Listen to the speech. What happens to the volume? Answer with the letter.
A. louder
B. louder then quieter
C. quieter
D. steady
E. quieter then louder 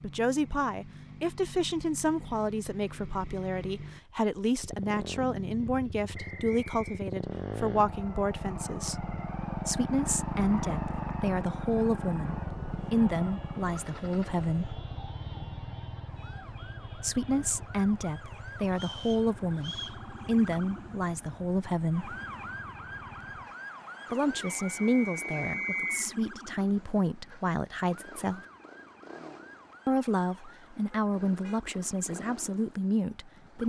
D.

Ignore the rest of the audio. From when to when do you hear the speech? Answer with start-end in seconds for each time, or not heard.
0.0-14.8, 16.9-22.1, 24.1-28.4, 29.9-33.6.